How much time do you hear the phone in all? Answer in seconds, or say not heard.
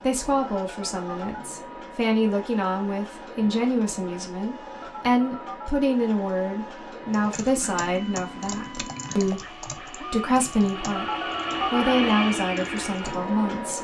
3 s.